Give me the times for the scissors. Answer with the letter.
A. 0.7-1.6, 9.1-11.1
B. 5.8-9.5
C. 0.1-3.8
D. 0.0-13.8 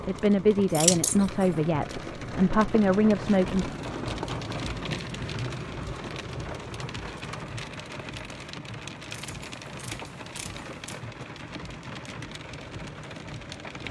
A.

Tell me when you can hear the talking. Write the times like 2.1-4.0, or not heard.
0.1-3.8.